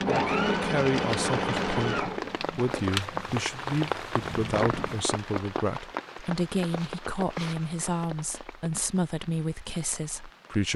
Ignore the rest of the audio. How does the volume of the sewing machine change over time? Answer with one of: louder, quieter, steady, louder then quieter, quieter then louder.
quieter then louder.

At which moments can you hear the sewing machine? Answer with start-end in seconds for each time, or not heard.
0.0-5.0.